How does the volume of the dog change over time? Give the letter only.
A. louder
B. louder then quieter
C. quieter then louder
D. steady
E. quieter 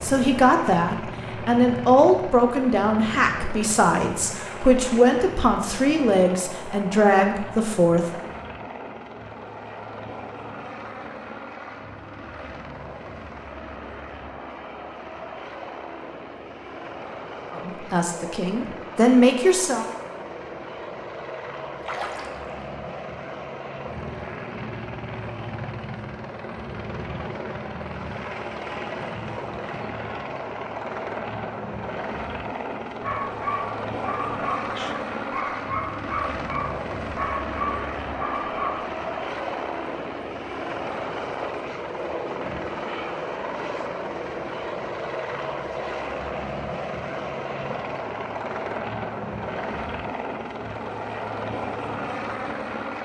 D.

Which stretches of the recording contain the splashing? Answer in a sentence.
The splashing can be heard from 21.8 to 22.6 s.